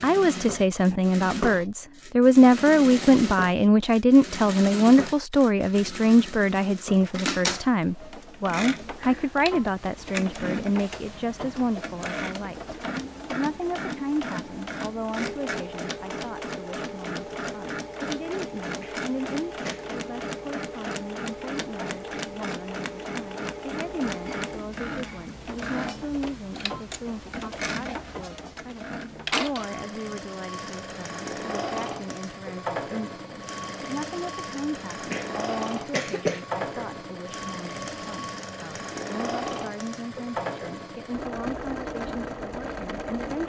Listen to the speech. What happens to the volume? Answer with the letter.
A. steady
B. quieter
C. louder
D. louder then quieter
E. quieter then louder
B.